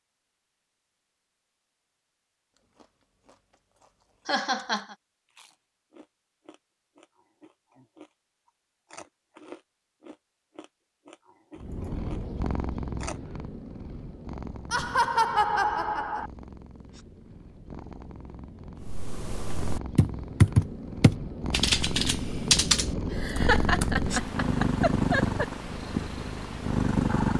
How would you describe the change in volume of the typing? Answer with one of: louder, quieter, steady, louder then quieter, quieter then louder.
louder then quieter.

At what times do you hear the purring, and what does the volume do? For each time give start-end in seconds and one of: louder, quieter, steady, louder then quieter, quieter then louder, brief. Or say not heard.
11.6-27.3 quieter then louder.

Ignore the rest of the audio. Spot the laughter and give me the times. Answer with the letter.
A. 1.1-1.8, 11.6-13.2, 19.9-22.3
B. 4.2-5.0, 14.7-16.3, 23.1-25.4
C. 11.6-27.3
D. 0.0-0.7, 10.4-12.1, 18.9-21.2
B.